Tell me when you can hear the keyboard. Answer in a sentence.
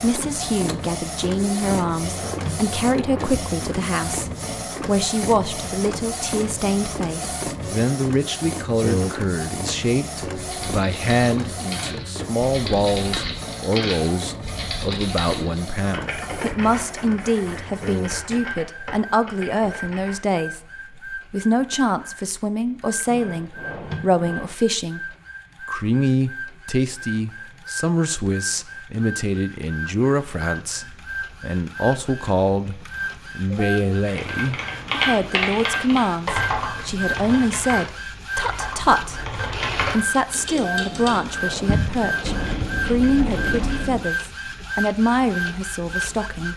The keyboard can be heard from 10.3 to 20.1 s and from 34.0 to 44.0 s.